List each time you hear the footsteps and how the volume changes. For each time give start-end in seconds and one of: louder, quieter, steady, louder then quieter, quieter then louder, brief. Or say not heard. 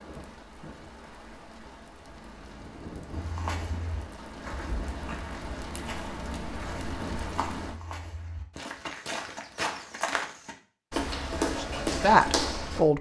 3.1-12.8 louder.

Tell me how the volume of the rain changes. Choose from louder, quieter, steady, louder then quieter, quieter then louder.
louder.